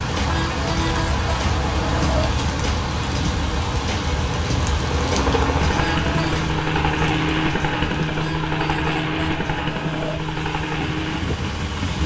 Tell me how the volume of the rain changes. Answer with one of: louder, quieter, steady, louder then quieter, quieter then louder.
quieter.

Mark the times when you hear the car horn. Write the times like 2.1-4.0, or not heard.
0.2-2.3, 5.8-6.5, 8.2-10.2.